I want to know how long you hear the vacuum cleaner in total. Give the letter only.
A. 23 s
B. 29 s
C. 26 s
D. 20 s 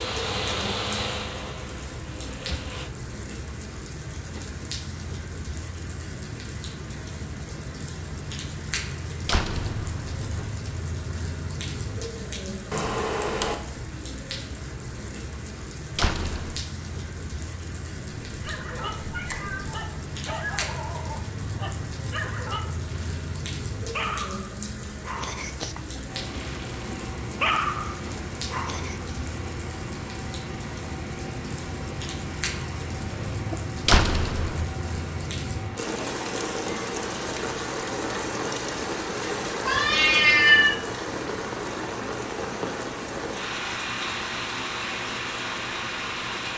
A.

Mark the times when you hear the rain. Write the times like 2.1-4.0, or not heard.
0.0-46.5.